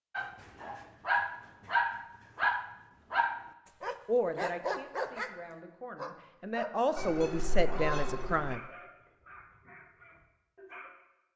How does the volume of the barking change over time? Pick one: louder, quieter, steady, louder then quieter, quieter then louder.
quieter.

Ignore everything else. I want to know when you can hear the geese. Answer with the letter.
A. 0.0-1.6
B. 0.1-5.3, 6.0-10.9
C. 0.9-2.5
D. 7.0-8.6
D.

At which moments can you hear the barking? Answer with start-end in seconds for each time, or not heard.
0.1-5.3, 6.0-10.9.